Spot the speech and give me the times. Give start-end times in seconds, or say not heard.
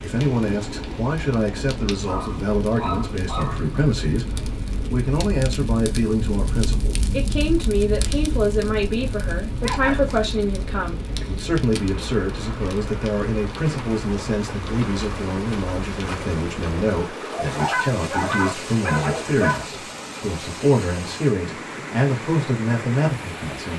0.0-23.7.